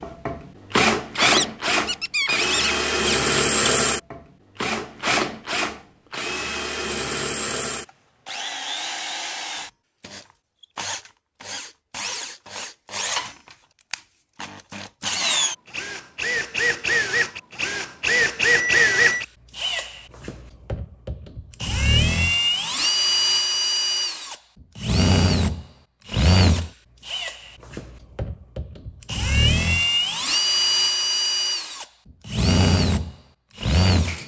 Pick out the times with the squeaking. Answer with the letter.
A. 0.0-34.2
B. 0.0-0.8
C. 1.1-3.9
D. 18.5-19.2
C.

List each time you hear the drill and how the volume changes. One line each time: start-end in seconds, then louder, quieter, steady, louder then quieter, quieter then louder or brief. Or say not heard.
0.0-34.2 quieter then louder.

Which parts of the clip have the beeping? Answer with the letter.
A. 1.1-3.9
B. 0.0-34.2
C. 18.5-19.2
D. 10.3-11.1
C.